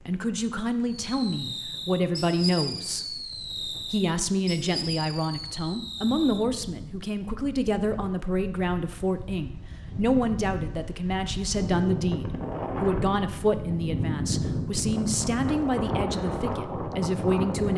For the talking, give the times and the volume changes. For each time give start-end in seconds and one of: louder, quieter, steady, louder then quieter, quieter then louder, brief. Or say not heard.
0.0-17.7 steady.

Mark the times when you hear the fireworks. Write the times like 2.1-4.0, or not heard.
1.1-6.7.